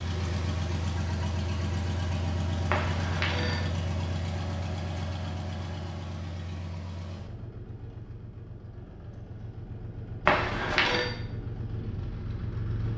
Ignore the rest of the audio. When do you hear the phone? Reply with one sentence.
The phone can be heard from 2.7 to 3.6 s and from 10.2 to 11.1 s.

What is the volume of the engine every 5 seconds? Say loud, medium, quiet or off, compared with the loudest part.
loud, medium, loud.